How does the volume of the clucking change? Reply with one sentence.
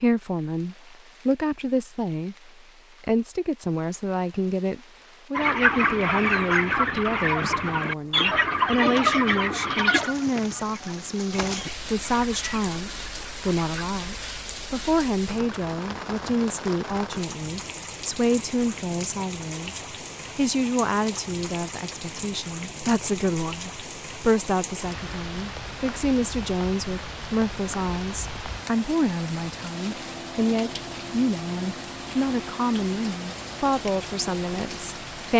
The loudness of the clucking goes down.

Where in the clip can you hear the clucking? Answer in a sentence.
You can hear the clucking from 5.3 to 13.9 s.